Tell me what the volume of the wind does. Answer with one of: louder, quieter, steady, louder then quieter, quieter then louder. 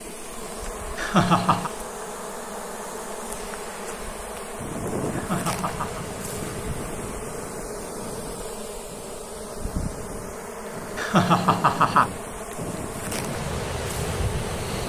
quieter then louder.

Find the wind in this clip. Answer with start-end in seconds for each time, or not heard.
4.5-14.8.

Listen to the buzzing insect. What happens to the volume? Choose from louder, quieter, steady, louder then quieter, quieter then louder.
steady.